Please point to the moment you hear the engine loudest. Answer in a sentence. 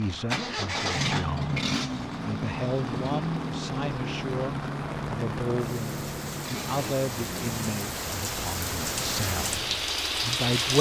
The loudest moment of the engine is at 1 second.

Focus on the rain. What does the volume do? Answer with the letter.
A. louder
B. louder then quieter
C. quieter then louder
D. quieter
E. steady
A.